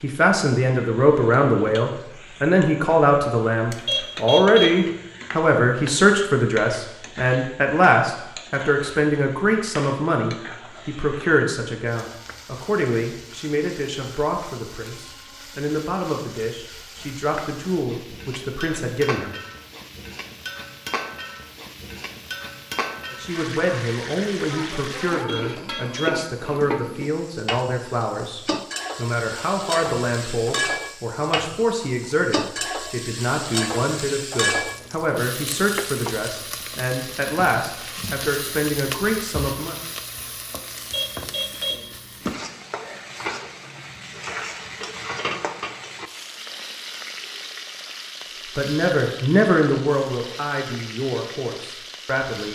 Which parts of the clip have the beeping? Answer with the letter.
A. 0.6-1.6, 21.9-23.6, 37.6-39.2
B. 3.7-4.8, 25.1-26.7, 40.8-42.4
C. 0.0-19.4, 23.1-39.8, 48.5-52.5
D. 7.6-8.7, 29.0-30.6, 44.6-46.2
B.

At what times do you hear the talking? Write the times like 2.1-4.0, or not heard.
0.0-19.4, 23.1-39.8, 48.5-52.5.